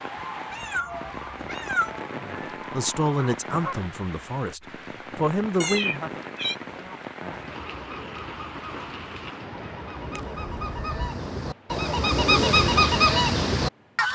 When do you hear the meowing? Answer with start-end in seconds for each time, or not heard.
0.5-2.0, 5.6-6.5, 10.0-11.2.